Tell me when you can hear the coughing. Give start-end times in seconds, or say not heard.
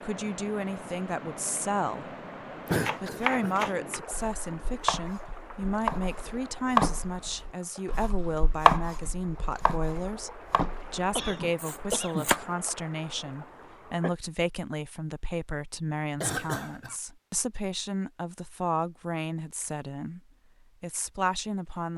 2.6-3.5, 11.2-12.4, 16.1-16.9.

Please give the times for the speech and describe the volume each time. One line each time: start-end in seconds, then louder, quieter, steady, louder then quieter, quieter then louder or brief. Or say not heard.
0.0-2.1 brief
3.0-20.2 steady
20.8-21.9 brief.